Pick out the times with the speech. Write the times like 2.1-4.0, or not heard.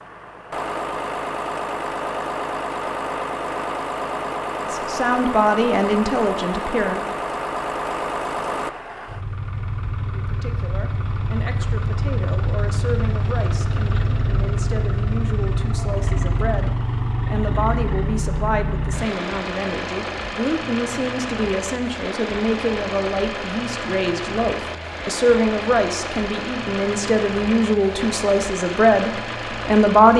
4.7-7.0, 10.1-30.1.